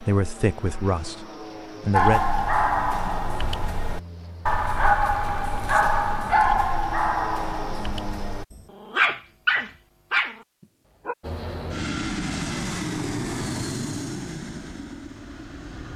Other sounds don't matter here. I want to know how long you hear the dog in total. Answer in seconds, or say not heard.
9 s.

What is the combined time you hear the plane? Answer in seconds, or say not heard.
13 s.